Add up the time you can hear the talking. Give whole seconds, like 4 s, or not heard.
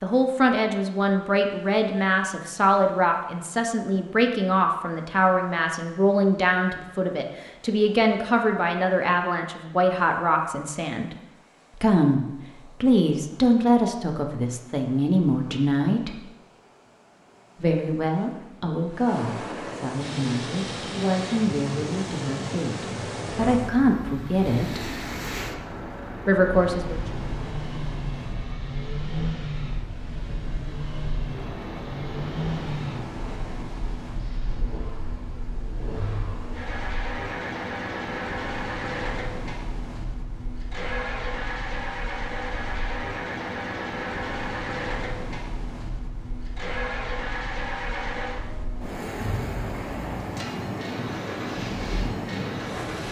24 s.